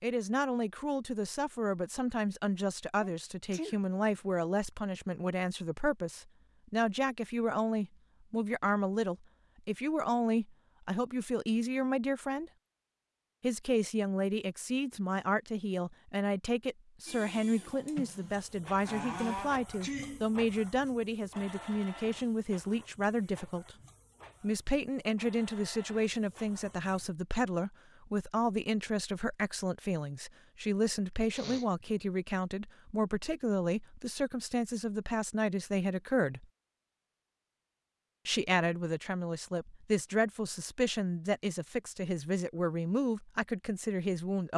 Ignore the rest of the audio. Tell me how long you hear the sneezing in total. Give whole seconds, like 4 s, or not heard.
3 s.